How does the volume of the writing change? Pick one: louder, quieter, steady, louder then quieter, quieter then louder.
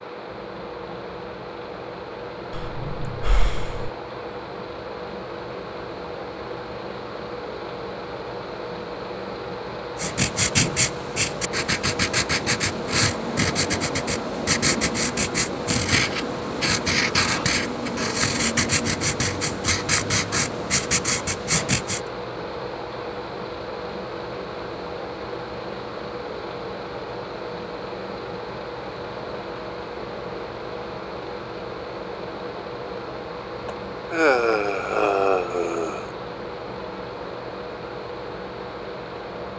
steady.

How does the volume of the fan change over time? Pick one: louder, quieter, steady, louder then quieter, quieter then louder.
steady.